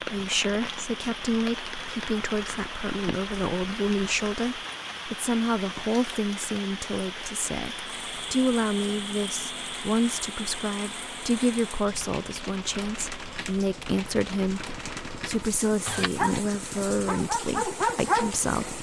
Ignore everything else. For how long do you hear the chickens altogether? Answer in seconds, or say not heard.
not heard.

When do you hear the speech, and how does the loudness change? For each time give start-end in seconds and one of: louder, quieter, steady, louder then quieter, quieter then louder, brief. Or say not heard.
0.0-18.7 steady.